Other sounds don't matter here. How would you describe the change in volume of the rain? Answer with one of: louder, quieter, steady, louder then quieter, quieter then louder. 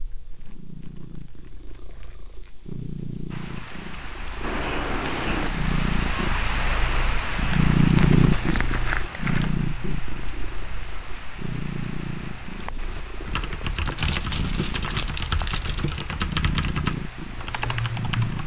quieter.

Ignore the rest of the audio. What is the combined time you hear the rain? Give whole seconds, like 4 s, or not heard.
15 s.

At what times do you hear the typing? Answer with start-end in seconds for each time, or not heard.
12.5-18.4.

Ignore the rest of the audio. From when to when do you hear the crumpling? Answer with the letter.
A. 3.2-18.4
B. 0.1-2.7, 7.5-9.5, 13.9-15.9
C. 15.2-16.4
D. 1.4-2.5
B.